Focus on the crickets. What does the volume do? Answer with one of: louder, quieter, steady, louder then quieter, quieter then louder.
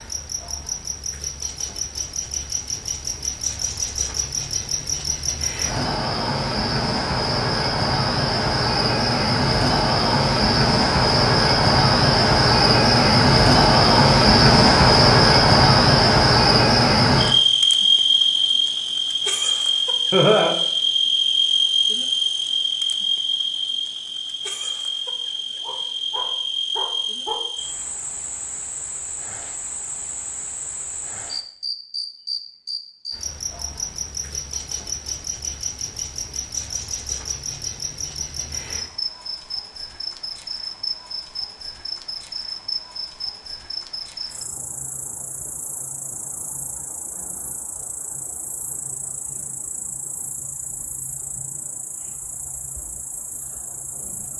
louder then quieter.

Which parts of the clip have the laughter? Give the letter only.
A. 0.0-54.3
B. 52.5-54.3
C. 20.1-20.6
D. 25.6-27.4
C.